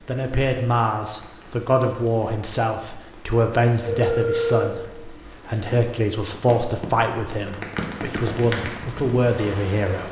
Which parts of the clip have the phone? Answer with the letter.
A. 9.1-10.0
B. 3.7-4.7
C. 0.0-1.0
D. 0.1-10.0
B.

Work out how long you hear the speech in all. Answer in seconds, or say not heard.
10 s.